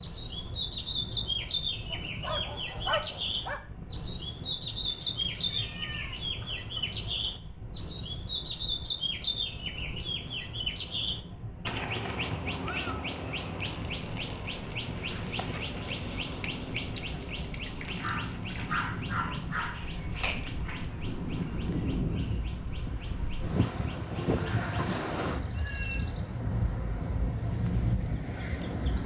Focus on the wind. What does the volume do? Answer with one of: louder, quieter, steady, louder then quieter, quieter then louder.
louder.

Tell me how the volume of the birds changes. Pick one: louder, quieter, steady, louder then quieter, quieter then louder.
quieter.